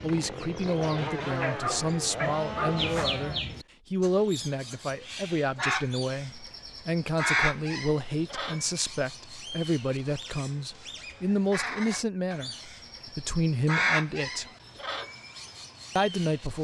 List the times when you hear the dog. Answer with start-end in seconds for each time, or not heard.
1.4-3.1.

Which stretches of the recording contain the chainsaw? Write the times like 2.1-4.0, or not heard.
0.0-3.4.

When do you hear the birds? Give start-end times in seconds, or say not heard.
0.0-16.5.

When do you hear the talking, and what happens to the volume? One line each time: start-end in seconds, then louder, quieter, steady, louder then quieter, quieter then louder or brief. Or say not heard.
0.0-14.5 steady
15.9-16.5 brief.